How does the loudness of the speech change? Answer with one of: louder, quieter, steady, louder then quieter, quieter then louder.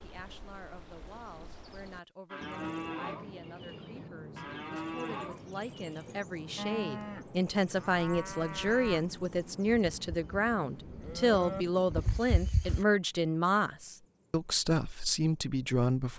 louder.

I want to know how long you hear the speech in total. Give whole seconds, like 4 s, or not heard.
16 s.